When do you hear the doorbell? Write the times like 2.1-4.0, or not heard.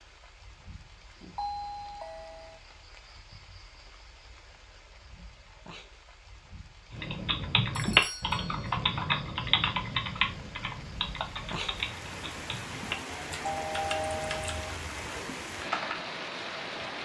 1.4-2.6, 7.8-8.8, 13.4-14.8.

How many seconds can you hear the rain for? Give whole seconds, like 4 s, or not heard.
17 s.